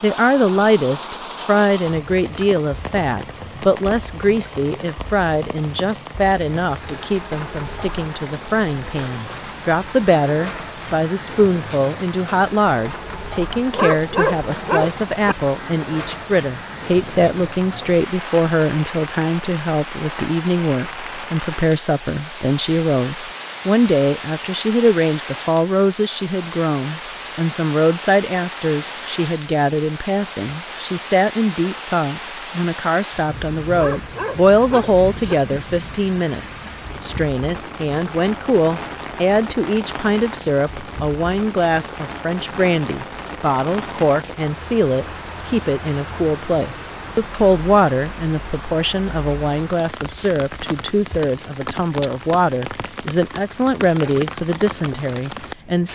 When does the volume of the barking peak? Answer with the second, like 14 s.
14 s.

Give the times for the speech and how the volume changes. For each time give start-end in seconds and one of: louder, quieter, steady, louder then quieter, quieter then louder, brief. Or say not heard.
0.0-55.9 steady.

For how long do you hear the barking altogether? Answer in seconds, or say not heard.
3 s.